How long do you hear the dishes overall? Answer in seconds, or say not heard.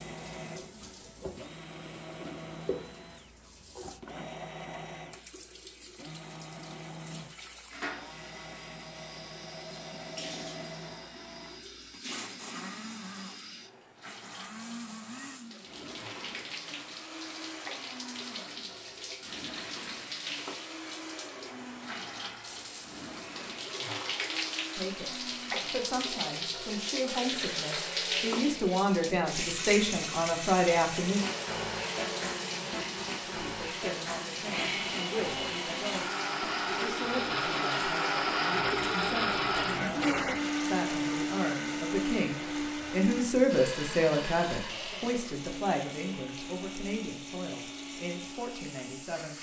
not heard.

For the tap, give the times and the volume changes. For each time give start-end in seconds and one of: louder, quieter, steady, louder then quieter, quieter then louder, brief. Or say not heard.
0.0-49.3 louder then quieter.